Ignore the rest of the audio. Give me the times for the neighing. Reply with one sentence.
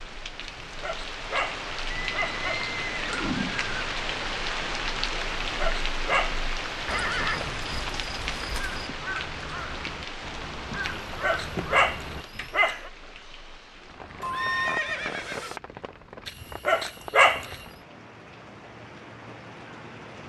You can hear the neighing from 1.9 to 3.9 s, from 6.8 to 8.8 s and from 14.2 to 15.6 s.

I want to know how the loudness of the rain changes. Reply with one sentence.
The volume of the rain goes down.